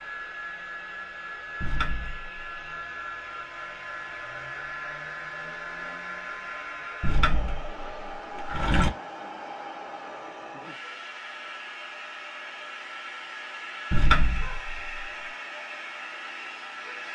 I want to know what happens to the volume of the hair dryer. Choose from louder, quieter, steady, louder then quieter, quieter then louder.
steady.